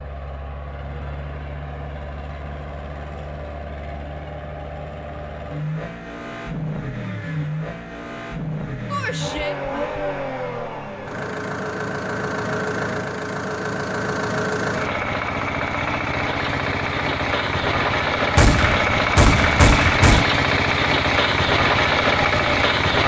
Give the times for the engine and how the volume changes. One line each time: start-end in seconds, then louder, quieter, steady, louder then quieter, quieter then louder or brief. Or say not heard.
0.0-23.0 louder.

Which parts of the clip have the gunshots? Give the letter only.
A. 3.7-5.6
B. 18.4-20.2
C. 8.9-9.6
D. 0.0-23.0
B.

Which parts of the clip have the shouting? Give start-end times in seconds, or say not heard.
8.9-9.6.